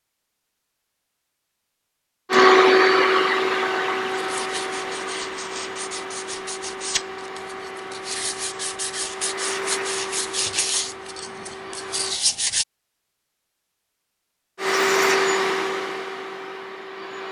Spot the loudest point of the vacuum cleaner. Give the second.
3 s.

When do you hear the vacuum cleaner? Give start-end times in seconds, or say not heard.
2.3-12.2, 14.6-17.2.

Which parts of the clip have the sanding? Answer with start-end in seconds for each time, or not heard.
4.1-12.7.